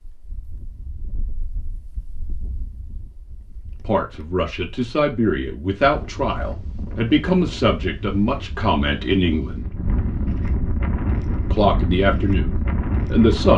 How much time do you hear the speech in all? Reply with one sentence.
The speech can be heard for 8 seconds in total.